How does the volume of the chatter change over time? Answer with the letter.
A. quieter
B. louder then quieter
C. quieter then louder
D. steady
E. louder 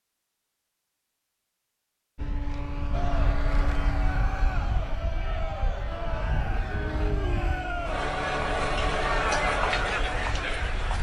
E.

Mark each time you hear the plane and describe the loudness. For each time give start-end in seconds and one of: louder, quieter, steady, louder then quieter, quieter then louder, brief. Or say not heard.
2.1-10.9 quieter.